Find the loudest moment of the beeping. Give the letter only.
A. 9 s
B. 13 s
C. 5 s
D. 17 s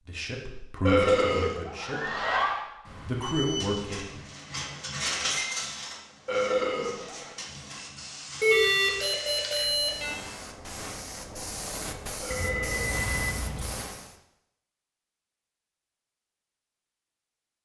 A.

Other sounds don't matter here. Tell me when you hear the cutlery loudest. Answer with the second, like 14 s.
5 s.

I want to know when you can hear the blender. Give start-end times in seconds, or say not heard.
not heard.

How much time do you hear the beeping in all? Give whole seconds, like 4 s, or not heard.
4 s.